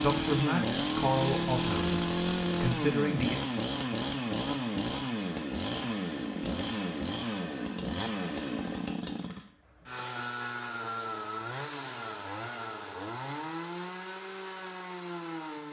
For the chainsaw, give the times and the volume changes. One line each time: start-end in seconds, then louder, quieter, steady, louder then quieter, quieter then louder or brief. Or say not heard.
0.0-15.6 quieter.